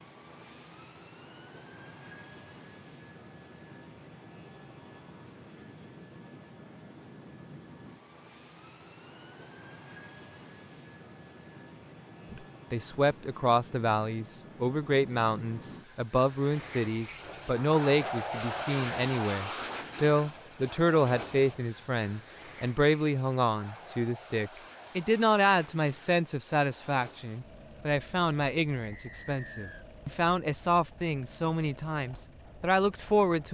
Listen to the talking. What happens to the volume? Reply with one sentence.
The volume of the talking stays about the same.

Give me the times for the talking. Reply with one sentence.
You can hear the talking from 12.3 to 33.4 s.